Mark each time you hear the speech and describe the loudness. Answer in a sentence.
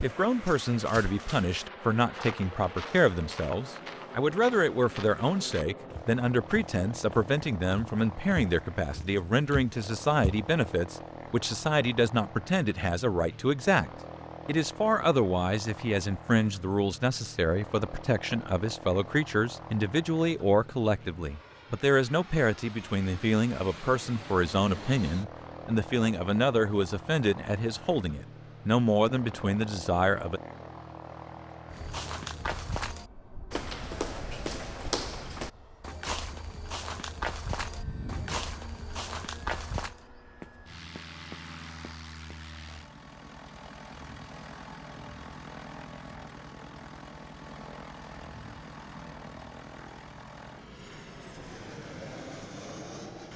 The speech can be heard from 0.0 to 30.4 s, at a steady volume.